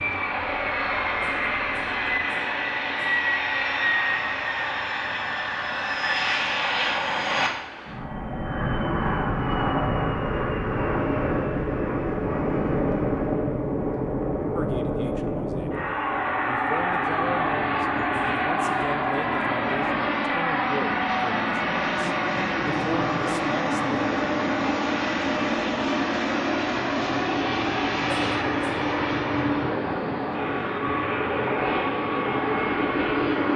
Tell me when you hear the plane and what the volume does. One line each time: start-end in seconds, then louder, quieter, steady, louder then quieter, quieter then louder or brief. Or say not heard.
0.0-33.5 steady.